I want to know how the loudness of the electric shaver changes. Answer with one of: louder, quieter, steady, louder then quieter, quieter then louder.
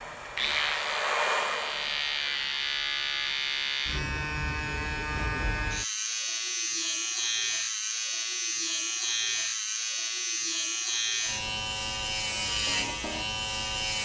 steady.